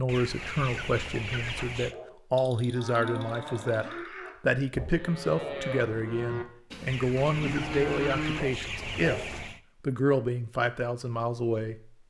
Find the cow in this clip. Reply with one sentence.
You can hear the cow from 2.4 to 8.4 s.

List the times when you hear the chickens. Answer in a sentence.
The chickens can be heard from 0.1 to 1.9 s and from 6.8 to 9.6 s.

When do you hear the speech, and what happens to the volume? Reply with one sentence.
The speech can be heard from 0.0 to 11.8 s, at a steady volume.